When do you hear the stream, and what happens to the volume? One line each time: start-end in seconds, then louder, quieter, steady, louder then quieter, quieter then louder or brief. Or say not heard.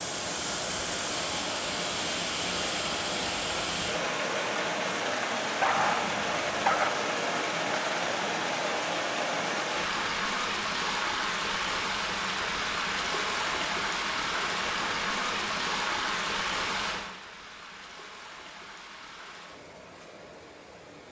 0.0-21.0 quieter.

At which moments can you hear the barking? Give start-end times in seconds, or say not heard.
5.6-6.9.